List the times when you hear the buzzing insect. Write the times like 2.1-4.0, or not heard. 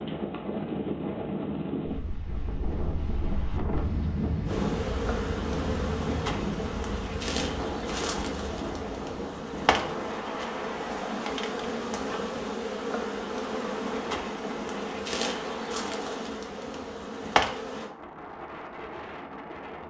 4.5-17.9.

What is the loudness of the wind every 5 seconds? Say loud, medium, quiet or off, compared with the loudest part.
loud, loud, medium, medium.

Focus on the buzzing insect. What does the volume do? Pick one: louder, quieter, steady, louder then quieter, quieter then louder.
steady.